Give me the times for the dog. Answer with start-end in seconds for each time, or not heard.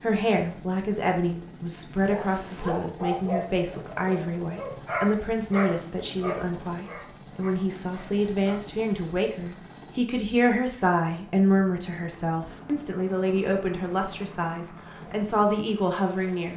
2.0-8.6.